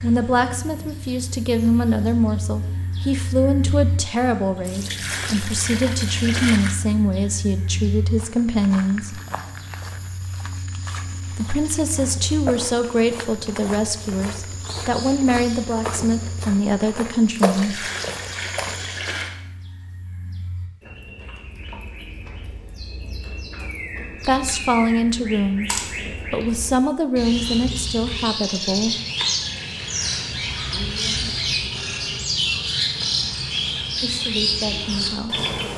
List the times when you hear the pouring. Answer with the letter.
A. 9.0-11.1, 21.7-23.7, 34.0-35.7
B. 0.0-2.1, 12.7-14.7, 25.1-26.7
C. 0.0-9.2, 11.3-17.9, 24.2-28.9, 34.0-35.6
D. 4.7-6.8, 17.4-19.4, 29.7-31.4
D.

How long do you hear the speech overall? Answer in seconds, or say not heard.
22 s.